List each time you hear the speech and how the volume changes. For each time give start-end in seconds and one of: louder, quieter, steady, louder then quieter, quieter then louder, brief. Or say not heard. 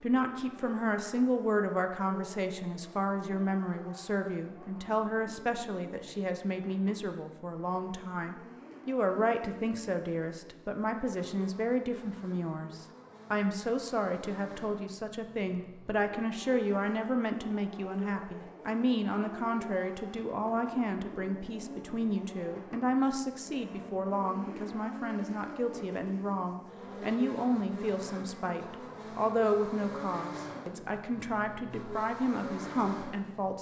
0.0-33.5 steady.